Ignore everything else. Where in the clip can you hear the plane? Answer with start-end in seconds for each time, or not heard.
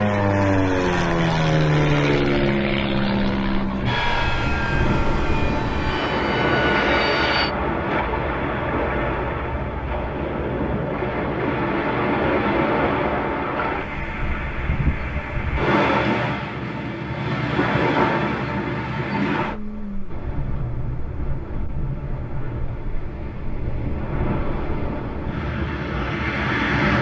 0.0-7.5.